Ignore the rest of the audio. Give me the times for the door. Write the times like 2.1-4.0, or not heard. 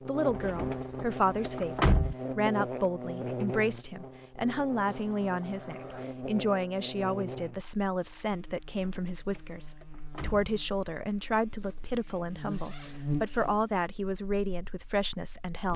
0.3-2.1, 8.8-10.5.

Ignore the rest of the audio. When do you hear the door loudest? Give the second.
2 s.